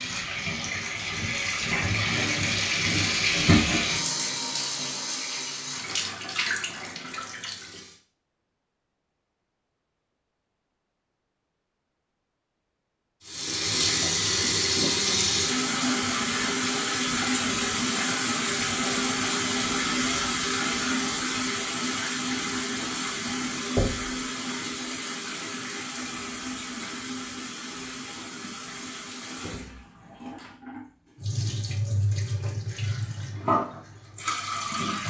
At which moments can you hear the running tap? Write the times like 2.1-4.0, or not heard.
0.0-8.0, 13.2-35.0.